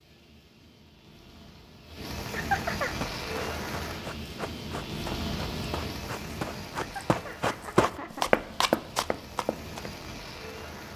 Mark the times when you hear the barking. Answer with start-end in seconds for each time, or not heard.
not heard.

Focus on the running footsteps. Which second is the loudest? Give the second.
8 s.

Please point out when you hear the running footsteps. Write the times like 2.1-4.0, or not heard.
3.0-9.9.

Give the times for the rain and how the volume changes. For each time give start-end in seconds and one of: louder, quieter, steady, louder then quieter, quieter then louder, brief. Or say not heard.
0.0-10.9 louder then quieter.